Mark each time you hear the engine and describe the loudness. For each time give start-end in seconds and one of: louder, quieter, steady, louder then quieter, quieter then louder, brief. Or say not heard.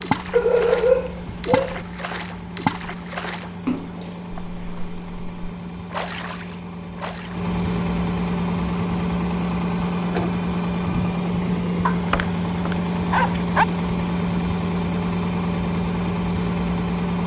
0.0-17.2 louder.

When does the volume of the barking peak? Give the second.
1 s.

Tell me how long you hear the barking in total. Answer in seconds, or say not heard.
3 s.